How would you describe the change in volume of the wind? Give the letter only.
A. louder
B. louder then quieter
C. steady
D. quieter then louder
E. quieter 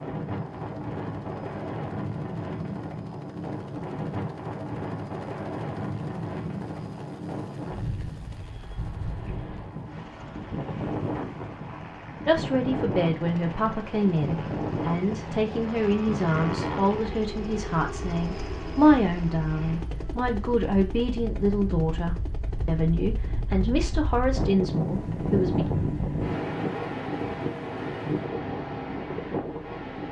D.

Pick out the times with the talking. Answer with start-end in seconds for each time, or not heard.
12.2-25.7.